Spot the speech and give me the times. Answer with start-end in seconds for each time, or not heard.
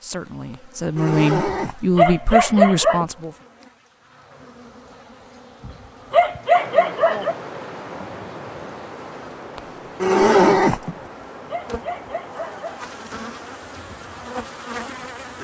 0.0-3.4.